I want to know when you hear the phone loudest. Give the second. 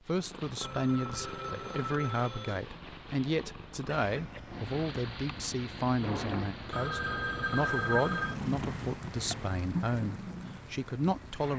8 s.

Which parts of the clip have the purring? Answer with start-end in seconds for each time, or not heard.
0.0-11.5.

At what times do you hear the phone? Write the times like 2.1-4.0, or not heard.
0.6-2.6, 6.7-8.4.